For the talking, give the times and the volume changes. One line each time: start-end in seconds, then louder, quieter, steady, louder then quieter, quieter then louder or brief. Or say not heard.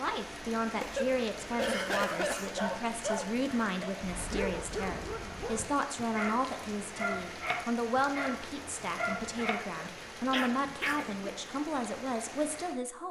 0.0-13.0 steady.